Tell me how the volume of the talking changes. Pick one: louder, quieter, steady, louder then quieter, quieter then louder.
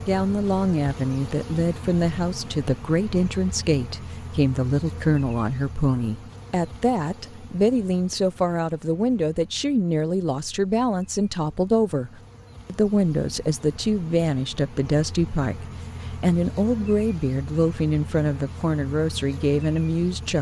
steady.